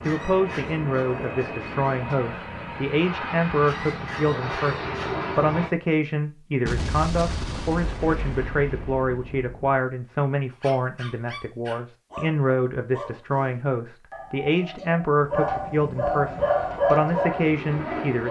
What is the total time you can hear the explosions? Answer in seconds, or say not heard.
3 s.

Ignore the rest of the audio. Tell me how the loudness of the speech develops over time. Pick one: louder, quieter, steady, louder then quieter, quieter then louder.
steady.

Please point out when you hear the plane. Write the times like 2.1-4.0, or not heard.
0.0-5.7, 16.2-18.2.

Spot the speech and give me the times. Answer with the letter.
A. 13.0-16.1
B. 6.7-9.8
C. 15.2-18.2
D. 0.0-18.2
D.